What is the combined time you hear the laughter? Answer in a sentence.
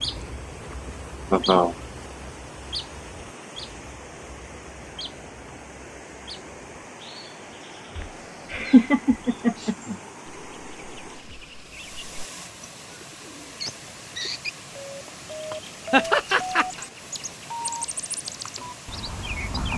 You can hear the laughter for 3 seconds altogether.